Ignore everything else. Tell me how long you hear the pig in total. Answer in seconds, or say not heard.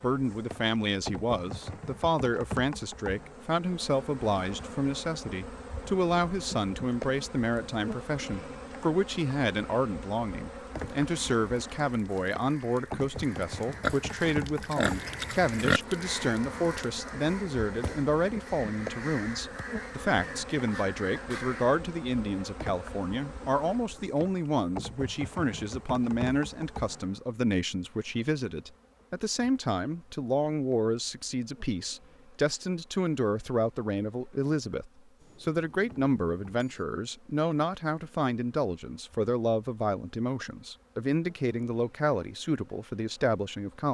2 s.